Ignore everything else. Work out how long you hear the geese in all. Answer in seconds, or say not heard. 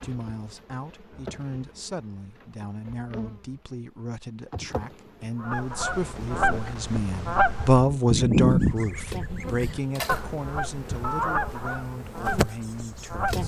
8 s.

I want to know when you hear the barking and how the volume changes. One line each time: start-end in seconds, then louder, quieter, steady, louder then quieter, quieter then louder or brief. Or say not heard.
not heard.